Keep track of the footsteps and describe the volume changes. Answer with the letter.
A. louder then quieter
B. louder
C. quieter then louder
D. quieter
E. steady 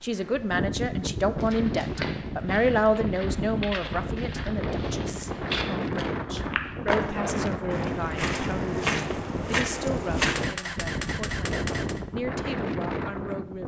B.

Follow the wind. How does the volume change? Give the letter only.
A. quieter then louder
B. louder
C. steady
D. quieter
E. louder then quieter
C.